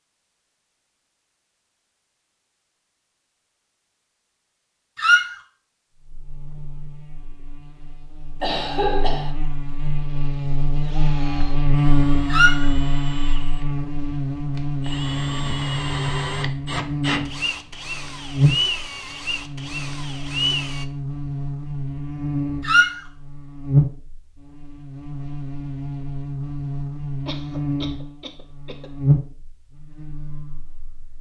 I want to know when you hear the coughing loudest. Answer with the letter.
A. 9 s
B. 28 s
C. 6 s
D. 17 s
A.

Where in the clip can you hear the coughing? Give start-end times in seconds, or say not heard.
8.4-9.3, 27.2-28.9.